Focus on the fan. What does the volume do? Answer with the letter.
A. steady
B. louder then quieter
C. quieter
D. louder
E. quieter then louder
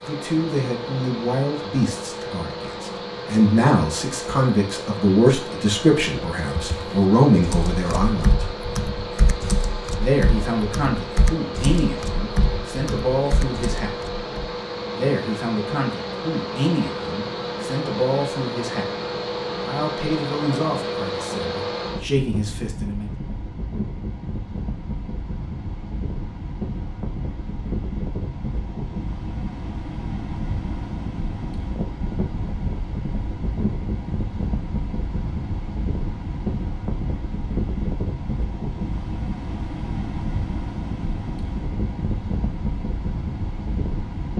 A.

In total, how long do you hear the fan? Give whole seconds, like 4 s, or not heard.
44 s.